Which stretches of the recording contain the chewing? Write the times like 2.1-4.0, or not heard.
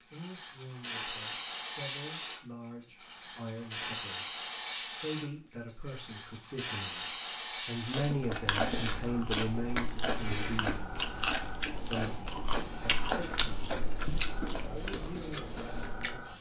7.8-16.2.